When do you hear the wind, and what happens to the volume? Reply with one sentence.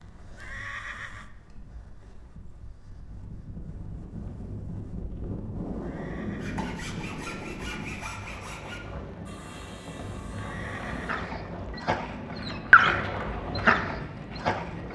The wind can be heard from 0.0 to 14.9 s, getting louder.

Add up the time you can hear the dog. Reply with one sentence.
The dog can be heard for 4 seconds in total.